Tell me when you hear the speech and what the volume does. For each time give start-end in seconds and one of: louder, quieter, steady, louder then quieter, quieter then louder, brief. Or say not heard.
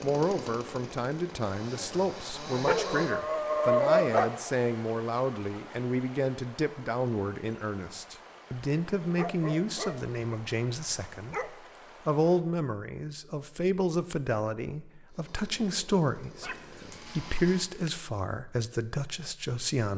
0.0-19.9 steady.